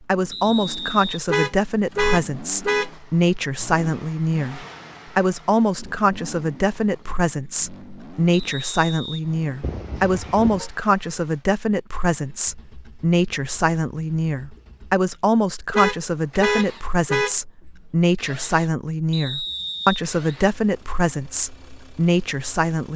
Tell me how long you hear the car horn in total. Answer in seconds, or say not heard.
4 s.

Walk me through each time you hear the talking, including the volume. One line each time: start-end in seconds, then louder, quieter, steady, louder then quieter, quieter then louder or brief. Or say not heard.
0.1-22.9 steady.